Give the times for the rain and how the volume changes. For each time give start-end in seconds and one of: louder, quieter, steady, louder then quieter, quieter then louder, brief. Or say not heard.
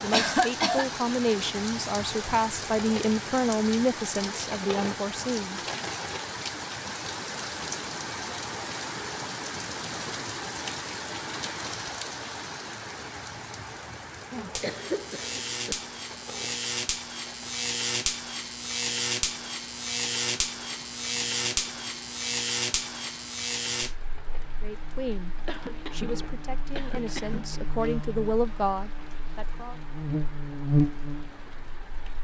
0.0-32.1 quieter.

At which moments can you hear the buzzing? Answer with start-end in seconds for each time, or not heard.
14.3-31.9.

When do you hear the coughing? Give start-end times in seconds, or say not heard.
0.1-0.8, 14.6-15.8, 25.4-27.6.